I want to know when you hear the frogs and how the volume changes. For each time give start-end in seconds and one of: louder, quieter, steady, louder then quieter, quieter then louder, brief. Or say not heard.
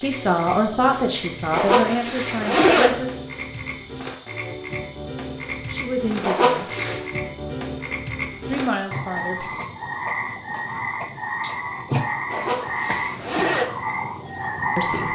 0.0-15.1 louder.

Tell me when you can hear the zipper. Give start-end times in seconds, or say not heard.
1.5-2.9, 6.2-7.0, 12.3-13.7.